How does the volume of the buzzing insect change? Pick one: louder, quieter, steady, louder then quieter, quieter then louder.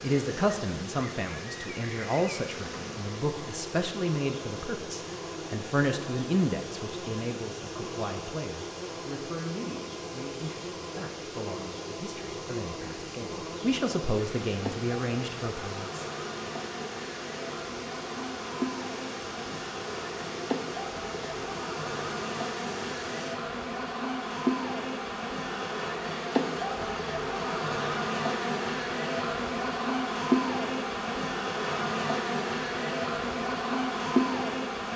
louder.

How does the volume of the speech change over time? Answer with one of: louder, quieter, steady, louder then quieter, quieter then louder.
quieter then louder.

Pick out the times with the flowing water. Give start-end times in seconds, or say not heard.
0.0-23.4.